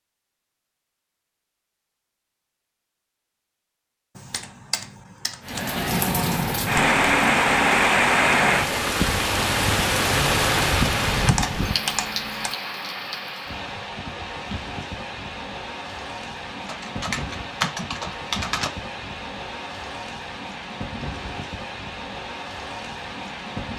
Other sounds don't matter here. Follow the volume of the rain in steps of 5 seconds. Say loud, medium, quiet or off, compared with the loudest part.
off, loud, medium, quiet, quiet.